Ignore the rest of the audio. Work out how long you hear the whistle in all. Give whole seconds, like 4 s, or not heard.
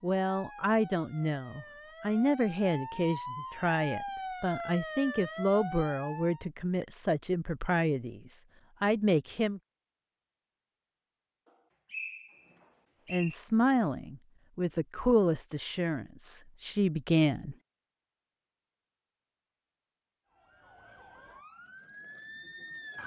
2 s.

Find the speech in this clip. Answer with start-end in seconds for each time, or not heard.
0.0-9.6, 13.1-17.6.